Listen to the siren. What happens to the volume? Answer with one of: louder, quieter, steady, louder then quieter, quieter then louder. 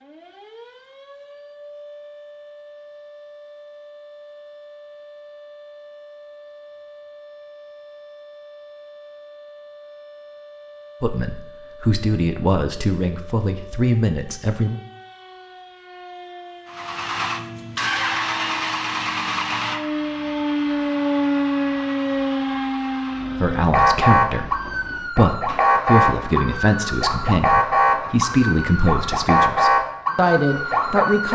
louder.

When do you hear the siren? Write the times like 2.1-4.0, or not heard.
0.0-31.2.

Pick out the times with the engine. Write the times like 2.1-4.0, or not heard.
16.6-31.2.